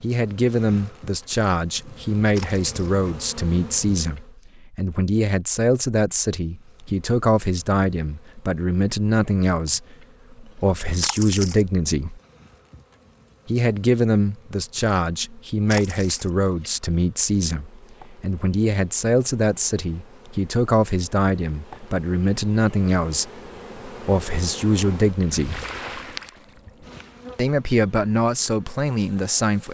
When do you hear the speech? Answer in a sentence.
The speech can be heard from 0.0 to 12.2 s, from 13.4 to 25.6 s and from 27.4 to 29.6 s.